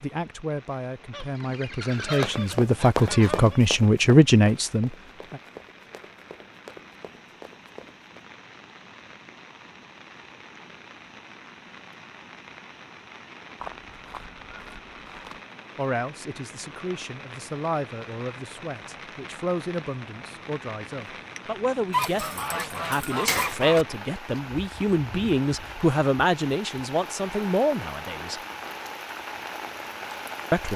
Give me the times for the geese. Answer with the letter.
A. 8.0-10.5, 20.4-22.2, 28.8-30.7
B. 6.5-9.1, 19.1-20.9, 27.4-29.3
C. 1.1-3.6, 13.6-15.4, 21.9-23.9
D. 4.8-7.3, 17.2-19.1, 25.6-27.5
C.